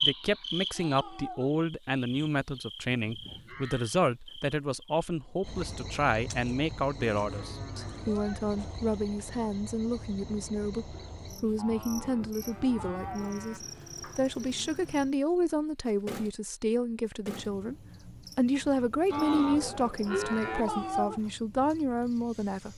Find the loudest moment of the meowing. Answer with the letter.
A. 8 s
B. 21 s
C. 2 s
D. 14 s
B.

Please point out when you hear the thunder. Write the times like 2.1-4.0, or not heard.
not heard.